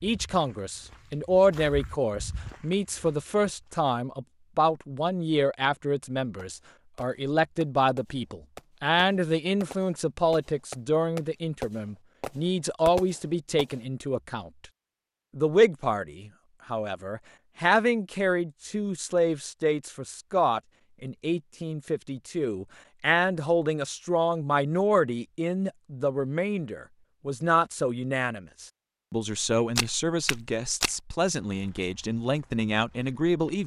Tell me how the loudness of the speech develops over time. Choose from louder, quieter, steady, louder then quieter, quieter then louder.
steady.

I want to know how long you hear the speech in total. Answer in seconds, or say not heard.
33 s.